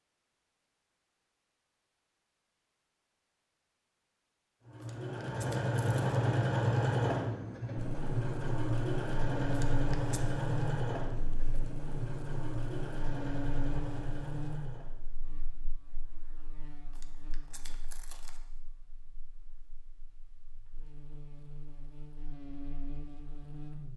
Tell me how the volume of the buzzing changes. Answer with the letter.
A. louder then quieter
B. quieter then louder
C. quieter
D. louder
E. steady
B.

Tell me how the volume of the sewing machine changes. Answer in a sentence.
The volume of the sewing machine goes down.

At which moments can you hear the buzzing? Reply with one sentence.
You can hear the buzzing from 7.8 to 23.9 s.